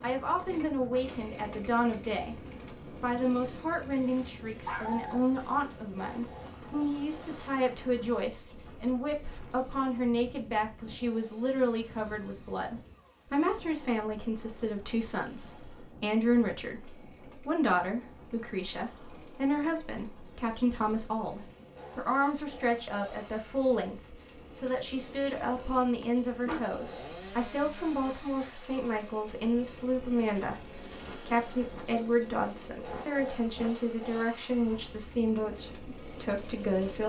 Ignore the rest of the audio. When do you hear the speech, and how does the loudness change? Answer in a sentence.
The speech can be heard briefly from 0.0 to 2.4 s; and from 3.0 to 37.0 s, at a steady volume.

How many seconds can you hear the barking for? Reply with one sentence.
The barking can be heard for 3 seconds in total.